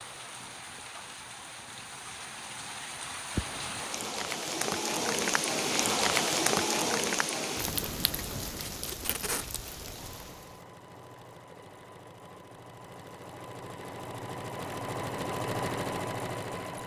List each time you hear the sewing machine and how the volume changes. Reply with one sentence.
You can hear the sewing machine from 9.8 to 16.8 s, getting louder.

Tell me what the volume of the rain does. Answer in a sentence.
The volume of the rain goes up, then down.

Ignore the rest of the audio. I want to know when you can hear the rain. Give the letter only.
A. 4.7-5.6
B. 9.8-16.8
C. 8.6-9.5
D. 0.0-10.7
D.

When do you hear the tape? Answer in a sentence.
You can hear the tape from 8.6 to 9.5 s.